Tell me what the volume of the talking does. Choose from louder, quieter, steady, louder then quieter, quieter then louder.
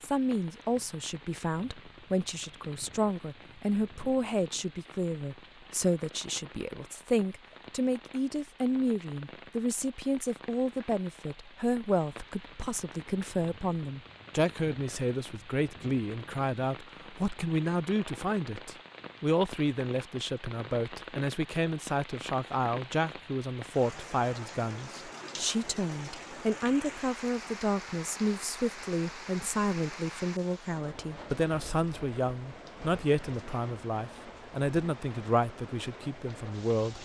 steady.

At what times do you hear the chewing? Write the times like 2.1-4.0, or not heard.
not heard.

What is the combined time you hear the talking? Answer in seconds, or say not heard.
37 s.